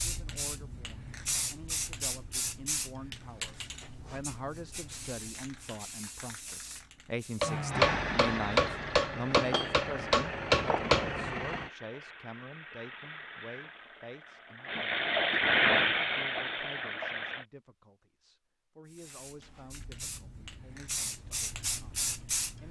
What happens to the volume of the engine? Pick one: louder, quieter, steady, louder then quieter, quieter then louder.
quieter then louder.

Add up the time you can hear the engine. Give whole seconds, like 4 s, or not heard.
10 s.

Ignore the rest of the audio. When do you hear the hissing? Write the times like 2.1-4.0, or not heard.
0.0-7.6, 18.9-22.6.